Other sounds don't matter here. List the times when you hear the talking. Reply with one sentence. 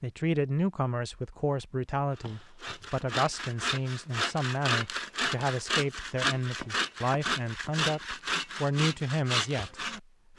You can hear the talking from 0.0 to 9.9 s.